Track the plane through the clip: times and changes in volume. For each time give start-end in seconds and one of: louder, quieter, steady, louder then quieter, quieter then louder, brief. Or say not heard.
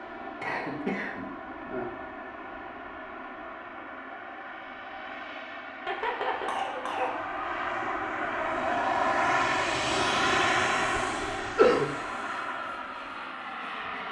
0.0-14.0 louder then quieter.